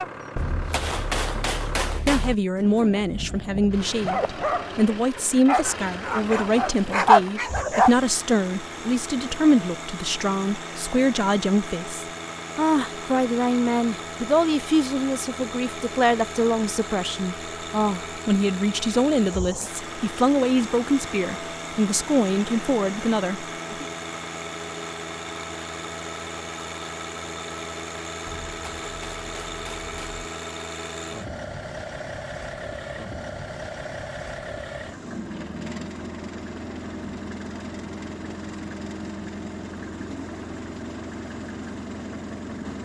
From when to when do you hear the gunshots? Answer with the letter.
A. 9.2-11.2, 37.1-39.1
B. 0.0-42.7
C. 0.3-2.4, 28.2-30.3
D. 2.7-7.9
C.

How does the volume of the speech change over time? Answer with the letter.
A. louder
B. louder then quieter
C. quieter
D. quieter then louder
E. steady
E.